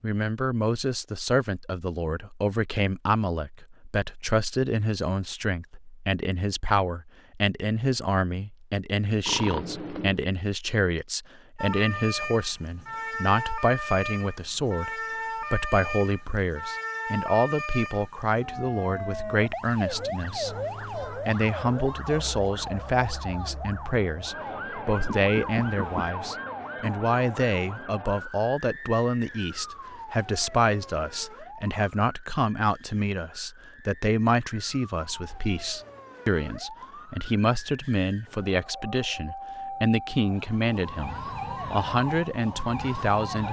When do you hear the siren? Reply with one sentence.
The siren can be heard from 11.6 to 43.4 s.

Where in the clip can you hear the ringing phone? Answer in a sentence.
You can hear the ringing phone from 9.2 to 10.2 s and from 25.1 to 26.1 s.